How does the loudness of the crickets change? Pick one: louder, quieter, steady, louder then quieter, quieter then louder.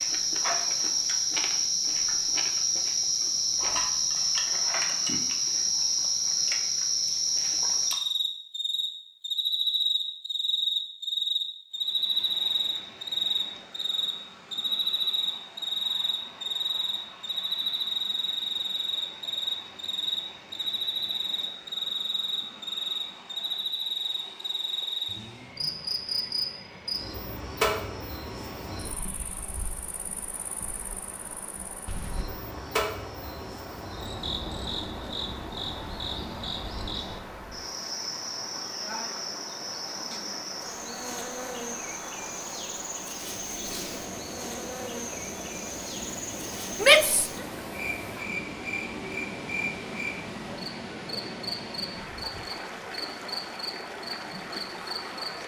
quieter.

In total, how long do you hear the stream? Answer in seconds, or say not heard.
44 s.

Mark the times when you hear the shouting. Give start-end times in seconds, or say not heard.
46.8-47.3.